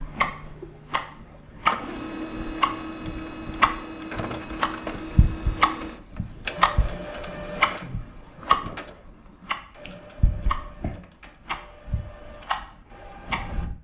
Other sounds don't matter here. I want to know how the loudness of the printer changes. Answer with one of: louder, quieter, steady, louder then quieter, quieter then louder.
quieter.